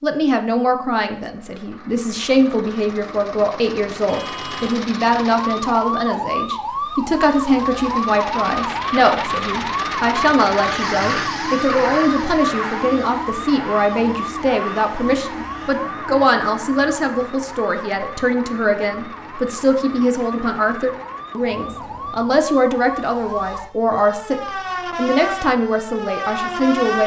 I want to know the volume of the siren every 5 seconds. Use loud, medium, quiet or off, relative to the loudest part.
off, loud, loud, medium, medium, loud.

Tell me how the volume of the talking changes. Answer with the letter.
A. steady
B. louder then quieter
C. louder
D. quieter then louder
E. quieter
A.